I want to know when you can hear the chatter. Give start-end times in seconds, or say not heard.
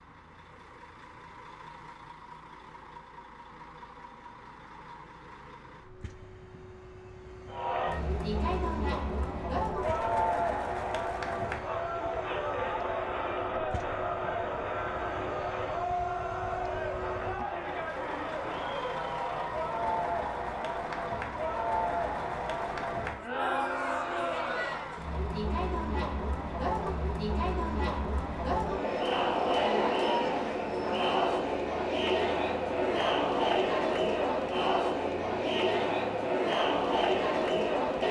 7.5-38.0.